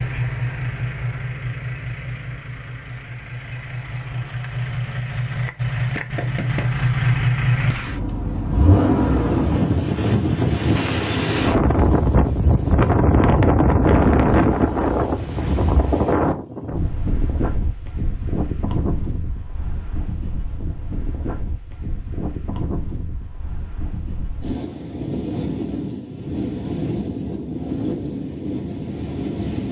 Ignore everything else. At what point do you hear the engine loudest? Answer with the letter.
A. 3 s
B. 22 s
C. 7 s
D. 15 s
C.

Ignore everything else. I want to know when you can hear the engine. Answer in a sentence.
You can hear the engine from 0.0 to 9.6 s.